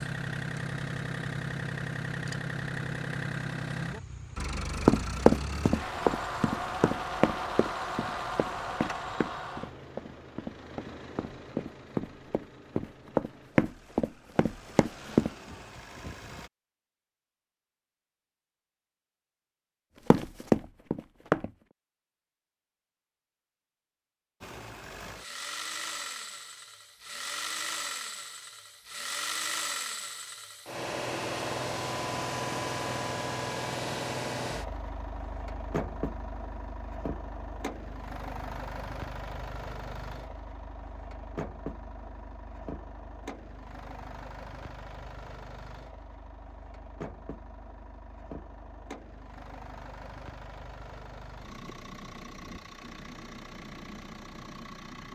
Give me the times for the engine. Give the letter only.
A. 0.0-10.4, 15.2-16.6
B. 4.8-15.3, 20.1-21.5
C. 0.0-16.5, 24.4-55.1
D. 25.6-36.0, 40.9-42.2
C.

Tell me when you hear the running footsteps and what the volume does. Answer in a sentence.
The running footsteps can be heard from 4.8 to 15.3 s, getting quieter then louder; and briefly from 20.1 to 21.5 s.